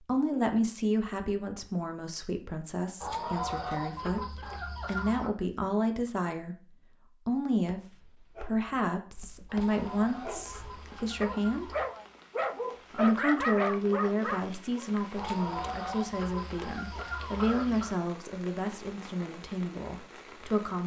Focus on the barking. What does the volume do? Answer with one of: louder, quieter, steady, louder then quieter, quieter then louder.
louder.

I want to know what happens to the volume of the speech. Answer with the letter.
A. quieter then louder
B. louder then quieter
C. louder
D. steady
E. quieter
D.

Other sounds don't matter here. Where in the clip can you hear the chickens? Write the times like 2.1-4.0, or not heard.
3.0-5.3, 9.4-11.9, 15.2-17.9.